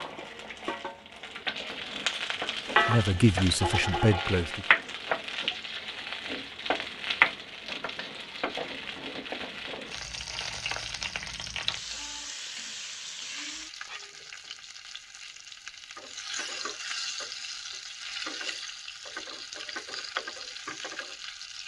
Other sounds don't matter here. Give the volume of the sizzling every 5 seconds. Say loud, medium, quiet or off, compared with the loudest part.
loud, loud, medium, medium, medium.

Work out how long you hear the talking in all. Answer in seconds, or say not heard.
2 s.